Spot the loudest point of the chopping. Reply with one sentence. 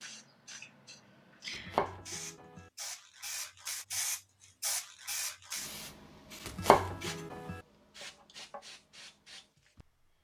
The volume of the chopping peaks at 7 seconds.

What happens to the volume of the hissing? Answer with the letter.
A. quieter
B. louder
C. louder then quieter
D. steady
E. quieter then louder
C.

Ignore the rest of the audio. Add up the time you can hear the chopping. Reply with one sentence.
You can hear the chopping for 2 seconds altogether.